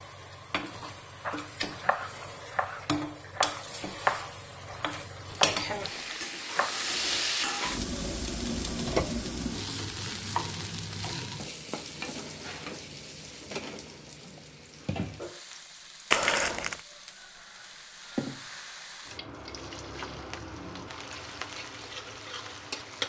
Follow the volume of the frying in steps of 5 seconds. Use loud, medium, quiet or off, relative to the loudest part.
medium, loud, medium, medium, medium.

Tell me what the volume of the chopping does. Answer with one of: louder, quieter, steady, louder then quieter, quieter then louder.
louder then quieter.